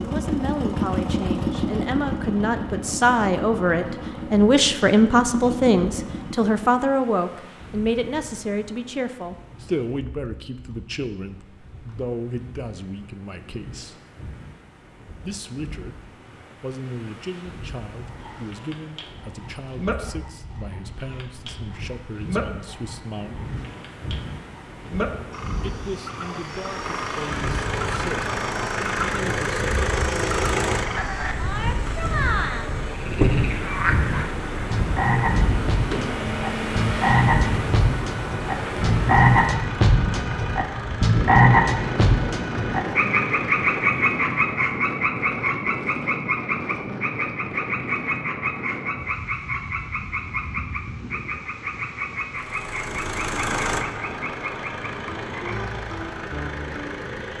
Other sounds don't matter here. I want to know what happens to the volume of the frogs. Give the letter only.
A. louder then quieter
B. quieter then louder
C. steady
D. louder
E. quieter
A.